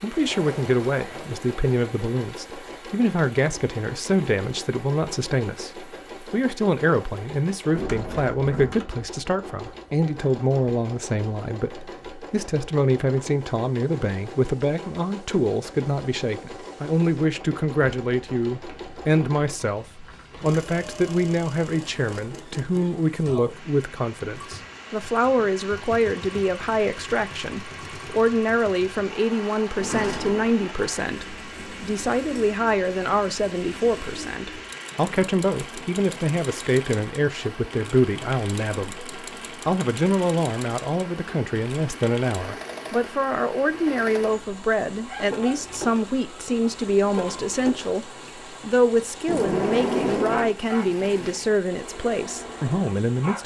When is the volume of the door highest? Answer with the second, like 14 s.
50 s.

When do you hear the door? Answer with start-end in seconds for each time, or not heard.
7.8-8.8, 29.8-30.5, 49.2-50.5.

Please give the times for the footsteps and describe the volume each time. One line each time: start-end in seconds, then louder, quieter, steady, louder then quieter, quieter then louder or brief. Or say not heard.
not heard.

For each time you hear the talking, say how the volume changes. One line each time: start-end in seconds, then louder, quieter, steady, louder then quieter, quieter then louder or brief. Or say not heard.
0.0-53.4 steady.